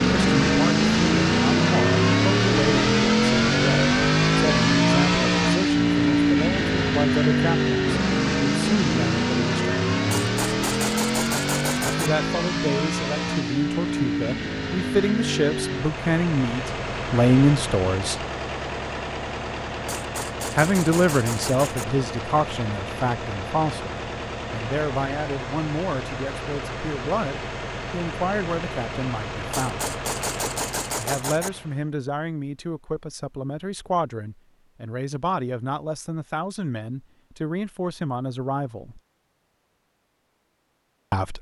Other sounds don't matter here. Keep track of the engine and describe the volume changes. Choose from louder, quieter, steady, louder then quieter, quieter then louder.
quieter.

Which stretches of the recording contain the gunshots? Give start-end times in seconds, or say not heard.
10.1-12.1, 19.9-21.9, 29.5-31.5.